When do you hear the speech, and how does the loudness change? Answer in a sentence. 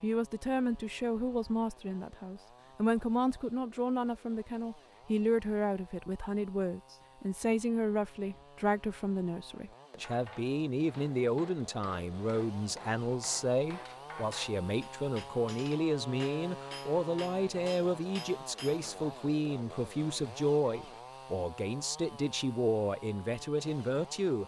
The speech can be heard from 0.0 to 24.4 s, at a steady volume.